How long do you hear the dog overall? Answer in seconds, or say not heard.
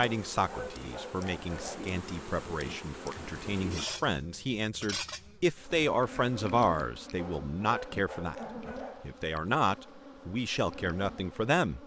4 s.